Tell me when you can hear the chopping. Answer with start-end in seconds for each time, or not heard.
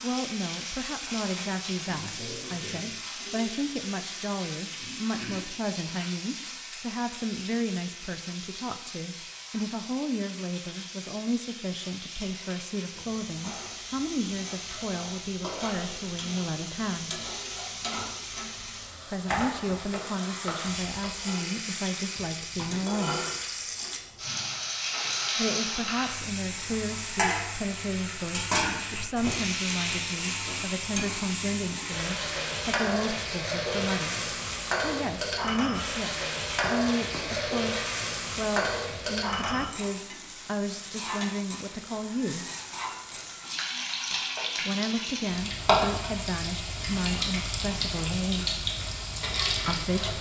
19.4-21.1, 36.6-37.5.